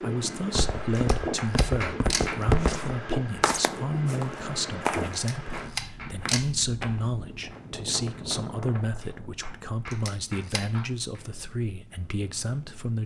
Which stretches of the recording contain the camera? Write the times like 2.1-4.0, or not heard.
0.9-2.3, 5.1-6.5, 9.9-10.7.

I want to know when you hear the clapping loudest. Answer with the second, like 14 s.
2 s.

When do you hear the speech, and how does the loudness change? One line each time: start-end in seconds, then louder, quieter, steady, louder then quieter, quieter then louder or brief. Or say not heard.
0.0-13.0 steady.